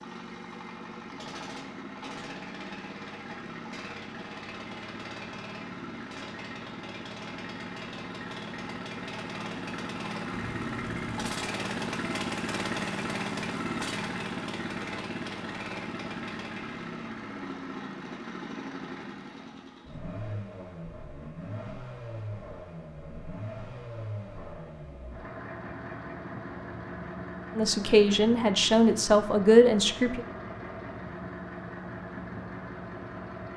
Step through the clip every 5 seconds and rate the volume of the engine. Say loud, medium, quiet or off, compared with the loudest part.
medium, medium, loud, medium, medium, medium, medium.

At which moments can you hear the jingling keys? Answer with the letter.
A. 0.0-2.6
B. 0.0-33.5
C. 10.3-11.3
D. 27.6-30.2
C.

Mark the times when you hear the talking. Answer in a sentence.
You can hear the talking from 27.6 to 30.2 s.